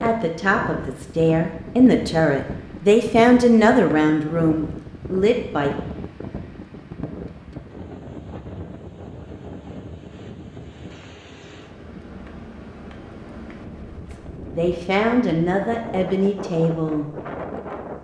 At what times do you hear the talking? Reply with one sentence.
You can hear the talking from 0.0 to 5.7 s and from 14.5 to 17.1 s.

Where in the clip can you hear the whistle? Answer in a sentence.
You can't hear the whistle here.